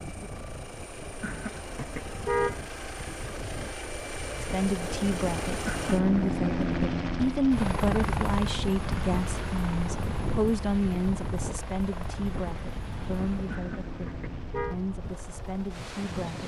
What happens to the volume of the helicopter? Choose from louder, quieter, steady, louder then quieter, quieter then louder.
louder then quieter.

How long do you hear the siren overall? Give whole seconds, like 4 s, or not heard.
not heard.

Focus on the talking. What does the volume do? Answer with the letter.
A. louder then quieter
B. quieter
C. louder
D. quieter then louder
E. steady
B.